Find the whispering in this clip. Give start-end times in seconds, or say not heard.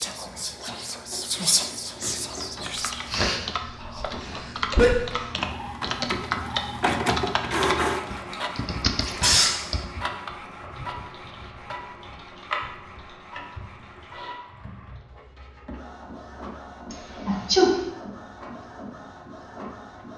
0.0-4.2.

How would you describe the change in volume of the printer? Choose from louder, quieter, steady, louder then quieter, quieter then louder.
louder then quieter.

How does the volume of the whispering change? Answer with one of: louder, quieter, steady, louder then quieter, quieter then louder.
louder then quieter.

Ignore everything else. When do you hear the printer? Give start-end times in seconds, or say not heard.
0.0-20.1.